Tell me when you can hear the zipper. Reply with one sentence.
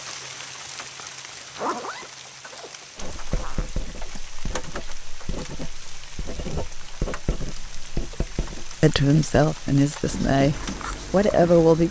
You can hear the zipper from 1.5 to 3.6 s.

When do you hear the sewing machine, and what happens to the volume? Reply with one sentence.
The sewing machine can't be heard in this clip.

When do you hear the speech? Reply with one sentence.
The speech can be heard from 8.8 to 11.8 s.